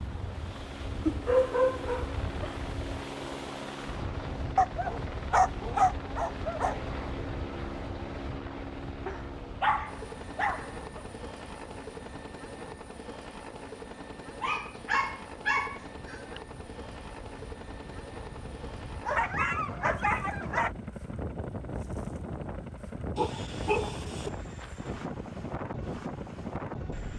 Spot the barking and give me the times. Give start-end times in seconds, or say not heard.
1.1-2.5, 4.5-6.8, 9.1-11.0, 14.4-16.4, 19.1-20.7, 23.1-24.3.